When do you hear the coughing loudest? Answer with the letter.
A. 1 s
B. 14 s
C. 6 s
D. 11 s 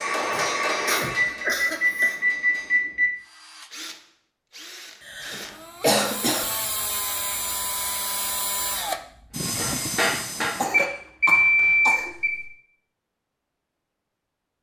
C.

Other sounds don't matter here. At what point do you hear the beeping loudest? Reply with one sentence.
The loudest moment of the beeping is at 11 seconds.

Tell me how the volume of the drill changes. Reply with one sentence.
The volume of the drill goes up.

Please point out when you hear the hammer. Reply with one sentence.
You can hear the hammer from 0.0 to 2.8 s and from 9.3 to 12.5 s.